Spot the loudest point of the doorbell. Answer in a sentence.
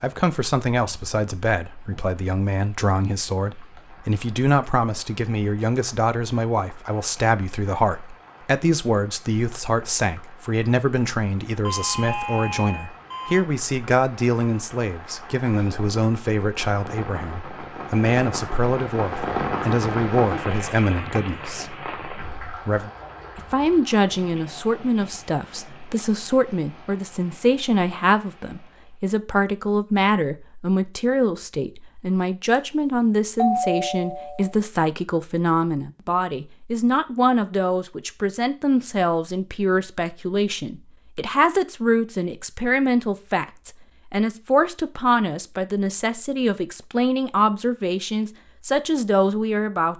The loudest moment of the doorbell is at 34 seconds.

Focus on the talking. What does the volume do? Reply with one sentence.
The volume of the talking stays about the same.